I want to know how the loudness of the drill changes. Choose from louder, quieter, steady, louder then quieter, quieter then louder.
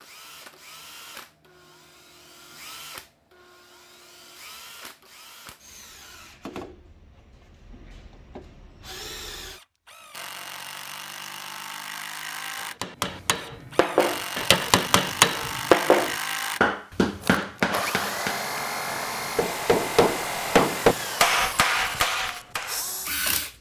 louder.